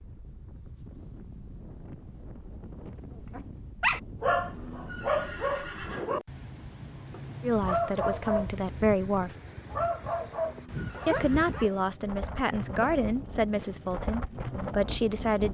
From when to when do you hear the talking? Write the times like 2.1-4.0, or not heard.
7.4-9.3, 11.1-15.5.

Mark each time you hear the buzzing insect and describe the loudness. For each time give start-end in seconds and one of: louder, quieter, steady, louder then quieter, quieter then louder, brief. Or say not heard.
not heard.